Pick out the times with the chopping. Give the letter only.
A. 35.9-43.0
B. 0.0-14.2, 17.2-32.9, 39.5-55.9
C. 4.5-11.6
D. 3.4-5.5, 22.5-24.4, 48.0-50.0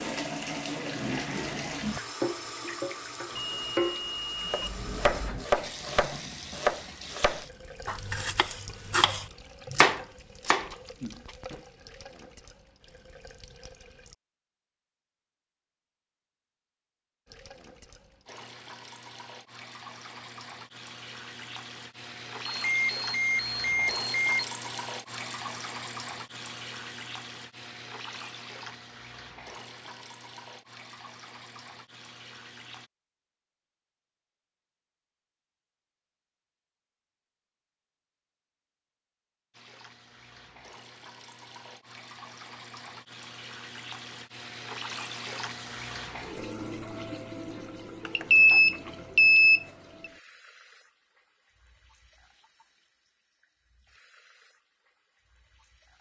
C.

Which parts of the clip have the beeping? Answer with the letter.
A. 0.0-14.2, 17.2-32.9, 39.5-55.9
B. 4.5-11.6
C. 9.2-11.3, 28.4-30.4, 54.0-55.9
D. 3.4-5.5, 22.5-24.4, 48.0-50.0
D.